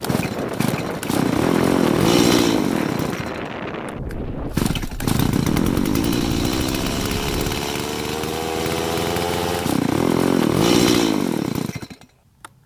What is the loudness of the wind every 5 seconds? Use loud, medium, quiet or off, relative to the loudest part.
loud, loud, off.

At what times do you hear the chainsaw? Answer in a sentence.
The chainsaw can be heard from 0.0 to 12.6 s.